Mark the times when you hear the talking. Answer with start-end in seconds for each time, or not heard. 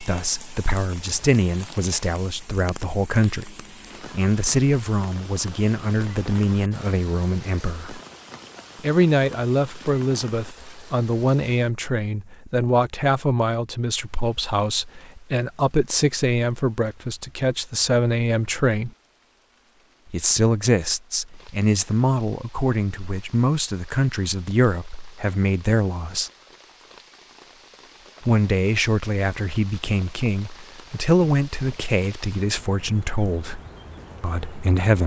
0.0-8.0, 8.8-18.9, 20.1-26.3, 28.2-33.6, 34.2-35.0.